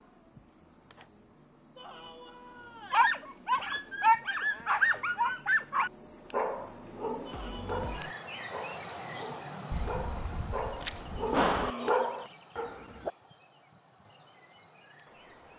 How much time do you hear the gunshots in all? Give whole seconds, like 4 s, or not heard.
2 s.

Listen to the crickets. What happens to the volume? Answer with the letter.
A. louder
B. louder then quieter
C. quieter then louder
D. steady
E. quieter
B.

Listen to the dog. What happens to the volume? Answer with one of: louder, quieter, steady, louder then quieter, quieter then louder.
quieter then louder.